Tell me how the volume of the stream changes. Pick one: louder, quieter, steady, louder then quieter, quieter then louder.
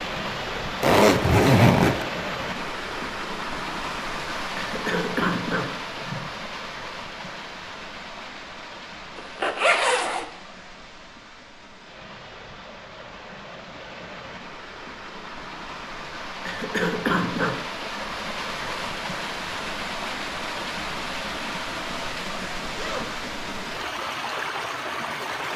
quieter then louder.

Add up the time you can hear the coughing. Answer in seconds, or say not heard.
3 s.